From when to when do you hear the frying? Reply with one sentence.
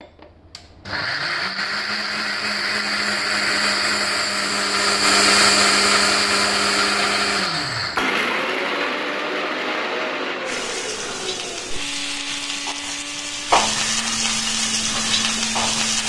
You can hear the frying from 10.4 to 16.0 s.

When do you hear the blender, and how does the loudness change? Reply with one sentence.
The blender can be heard from 0.0 to 16.0 s, getting louder then quieter.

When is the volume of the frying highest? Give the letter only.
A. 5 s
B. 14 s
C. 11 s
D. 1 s
B.